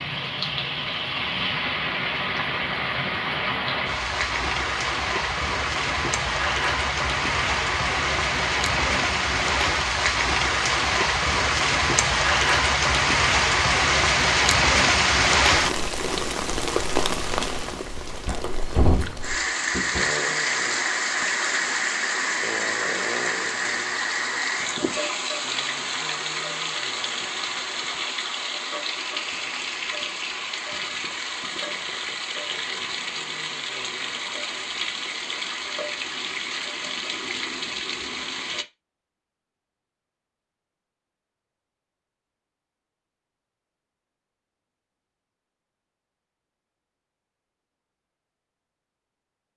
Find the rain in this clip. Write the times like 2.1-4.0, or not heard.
0.0-38.6.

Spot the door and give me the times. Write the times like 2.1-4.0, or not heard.
18.4-20.1.